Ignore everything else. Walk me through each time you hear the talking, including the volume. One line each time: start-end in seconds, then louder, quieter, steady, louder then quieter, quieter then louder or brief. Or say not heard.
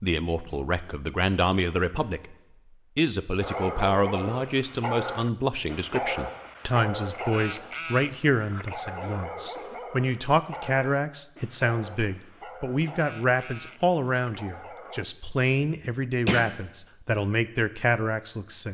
0.0-2.4 brief
3.0-18.6 steady.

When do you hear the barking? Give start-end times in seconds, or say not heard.
3.4-15.1.